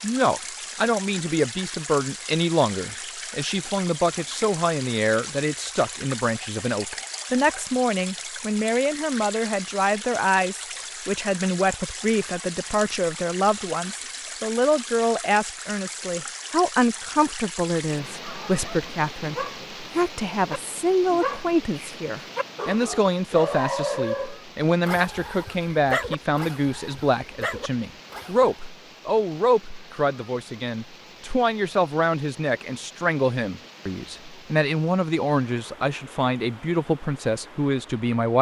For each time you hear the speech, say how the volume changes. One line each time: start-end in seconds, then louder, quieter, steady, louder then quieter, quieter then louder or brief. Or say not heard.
0.0-38.3 steady.